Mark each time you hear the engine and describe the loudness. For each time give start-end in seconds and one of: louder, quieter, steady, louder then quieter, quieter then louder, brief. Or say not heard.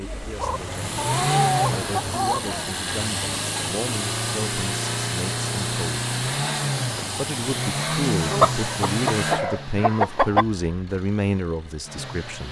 0.0-12.4 quieter.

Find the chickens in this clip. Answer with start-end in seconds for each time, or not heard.
0.3-2.8, 8.3-10.4.